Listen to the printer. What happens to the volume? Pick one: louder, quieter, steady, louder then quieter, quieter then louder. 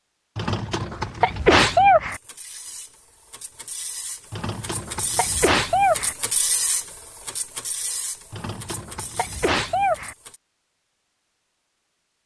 louder then quieter.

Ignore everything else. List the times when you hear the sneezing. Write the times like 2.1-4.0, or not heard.
0.3-2.2, 4.3-6.2, 8.3-10.2.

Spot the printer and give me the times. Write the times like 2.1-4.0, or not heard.
2.0-10.4.